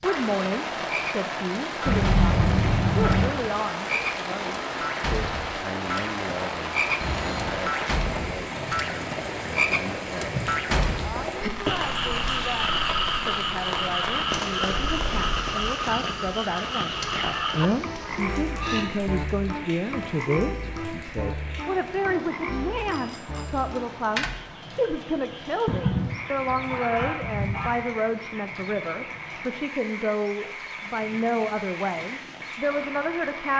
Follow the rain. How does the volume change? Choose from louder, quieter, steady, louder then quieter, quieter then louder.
quieter.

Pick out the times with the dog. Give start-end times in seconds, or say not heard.
not heard.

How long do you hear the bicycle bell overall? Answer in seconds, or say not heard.
2 s.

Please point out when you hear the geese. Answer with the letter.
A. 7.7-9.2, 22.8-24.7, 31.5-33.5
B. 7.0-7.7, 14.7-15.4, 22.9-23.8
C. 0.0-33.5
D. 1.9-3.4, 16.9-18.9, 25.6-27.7
D.